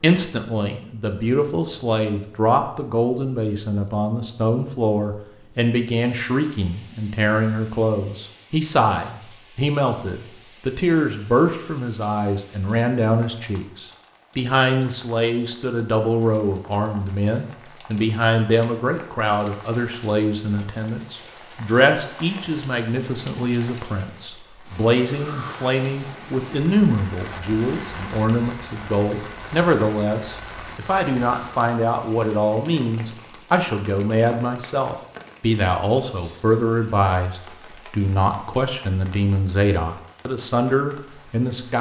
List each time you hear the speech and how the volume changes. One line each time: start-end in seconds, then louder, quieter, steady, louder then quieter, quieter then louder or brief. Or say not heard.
0.0-41.7 steady.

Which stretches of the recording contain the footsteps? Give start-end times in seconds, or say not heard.
not heard.